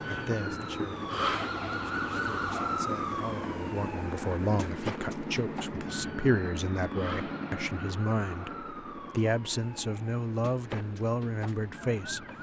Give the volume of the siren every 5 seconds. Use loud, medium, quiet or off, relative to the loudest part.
loud, medium, medium.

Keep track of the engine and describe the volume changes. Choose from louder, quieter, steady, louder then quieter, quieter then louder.
quieter.